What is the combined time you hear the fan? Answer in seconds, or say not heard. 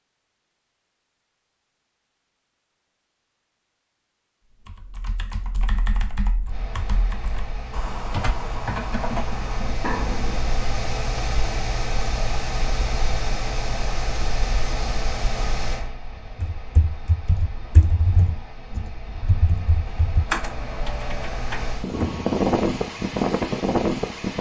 18 s.